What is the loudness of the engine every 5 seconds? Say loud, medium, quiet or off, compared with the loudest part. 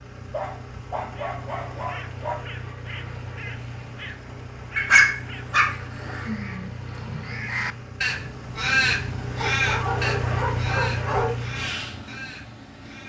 medium, medium, loud.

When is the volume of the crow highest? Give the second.
9 s.